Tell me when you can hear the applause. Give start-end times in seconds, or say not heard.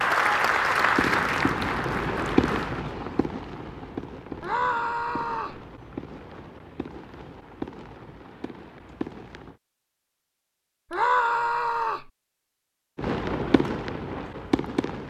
0.0-2.9.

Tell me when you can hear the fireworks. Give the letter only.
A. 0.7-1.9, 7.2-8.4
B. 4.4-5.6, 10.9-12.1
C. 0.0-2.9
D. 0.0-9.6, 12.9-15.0
D.